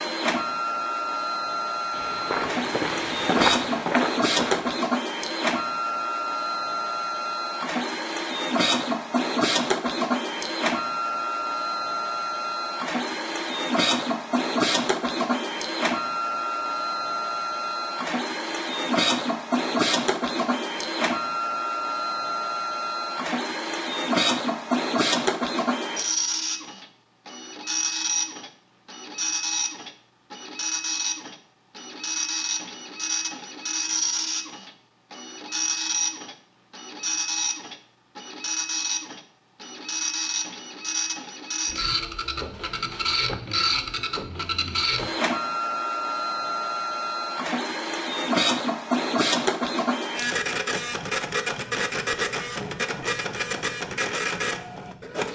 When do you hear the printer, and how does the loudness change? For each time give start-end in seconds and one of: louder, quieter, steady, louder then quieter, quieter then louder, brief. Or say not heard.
0.0-55.3 steady.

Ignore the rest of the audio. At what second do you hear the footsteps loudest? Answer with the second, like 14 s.
3 s.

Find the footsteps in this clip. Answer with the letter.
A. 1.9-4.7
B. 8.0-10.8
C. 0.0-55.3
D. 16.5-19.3
A.